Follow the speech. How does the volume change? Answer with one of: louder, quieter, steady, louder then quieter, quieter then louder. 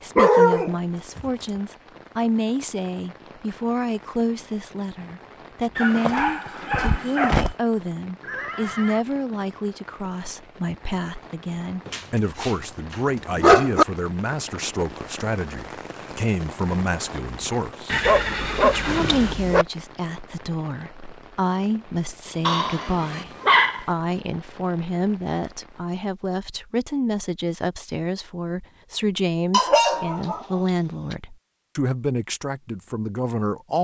steady.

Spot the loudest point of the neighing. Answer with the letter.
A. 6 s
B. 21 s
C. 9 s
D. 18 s
D.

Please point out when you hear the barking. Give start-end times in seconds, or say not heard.
0.1-1.5, 5.8-7.5, 11.8-13.8, 18.1-19.6, 22.4-23.9, 29.5-31.1.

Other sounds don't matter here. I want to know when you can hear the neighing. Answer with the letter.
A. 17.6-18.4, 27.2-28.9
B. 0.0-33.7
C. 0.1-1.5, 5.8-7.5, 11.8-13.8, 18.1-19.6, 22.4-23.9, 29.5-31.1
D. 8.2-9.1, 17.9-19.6
D.